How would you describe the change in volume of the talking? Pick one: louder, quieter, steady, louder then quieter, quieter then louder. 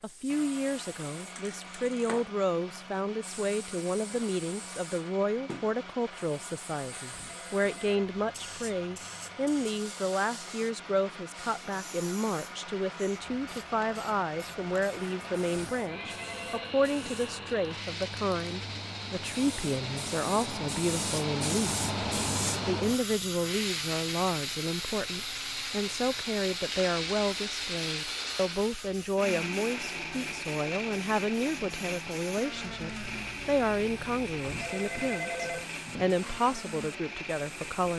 steady.